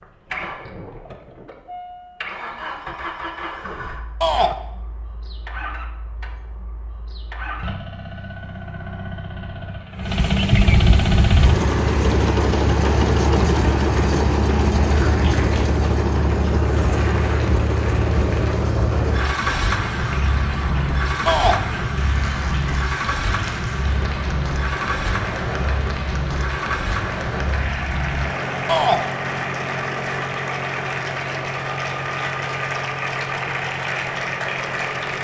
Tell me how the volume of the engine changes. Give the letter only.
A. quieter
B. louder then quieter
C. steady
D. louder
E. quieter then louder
B.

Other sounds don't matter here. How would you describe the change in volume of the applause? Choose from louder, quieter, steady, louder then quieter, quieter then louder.
louder.